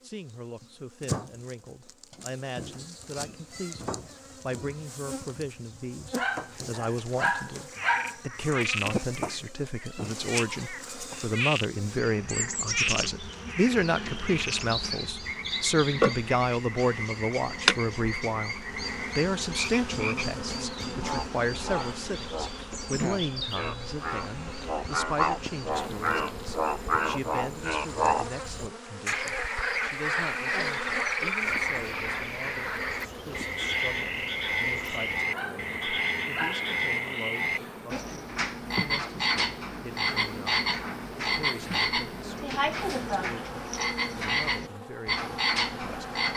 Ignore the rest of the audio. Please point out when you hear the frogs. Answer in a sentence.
The frogs can be heard from 7.7 to 46.3 s.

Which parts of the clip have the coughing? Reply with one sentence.
You can't hear the coughing here.